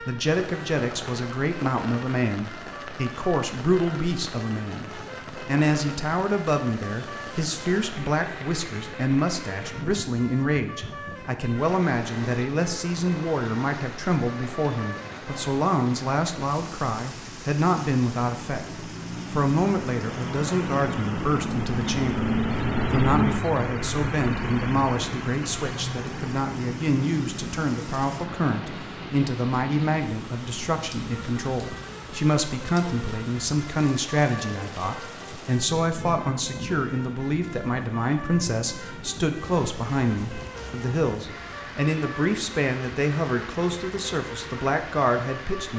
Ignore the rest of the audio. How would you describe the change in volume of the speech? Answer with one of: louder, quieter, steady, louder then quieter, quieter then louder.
steady.